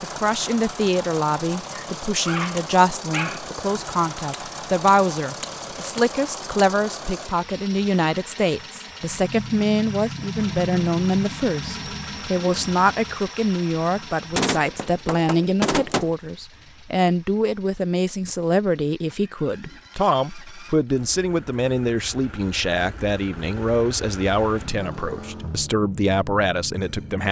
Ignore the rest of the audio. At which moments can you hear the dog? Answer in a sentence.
The dog can be heard from 1.7 to 3.5 s.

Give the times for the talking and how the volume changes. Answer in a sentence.
The talking can be heard from 0.0 to 27.2 s, at a steady volume.